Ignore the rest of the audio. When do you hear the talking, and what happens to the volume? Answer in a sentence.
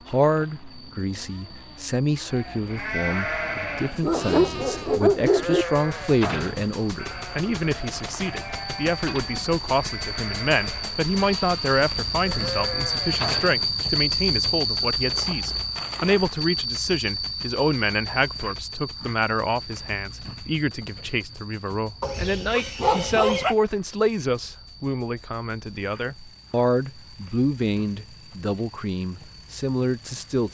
You can hear the talking from 0.1 to 30.4 s, at a steady volume.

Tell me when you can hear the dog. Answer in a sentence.
You can hear the dog from 4.0 to 5.7 s and from 22.0 to 23.6 s.